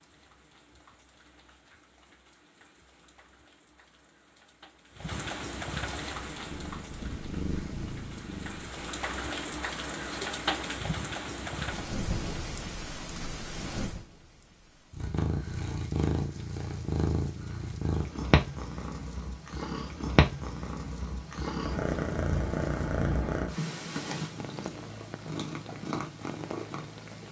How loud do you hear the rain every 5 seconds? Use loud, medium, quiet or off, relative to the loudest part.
quiet, loud, loud, quiet, quiet, medium.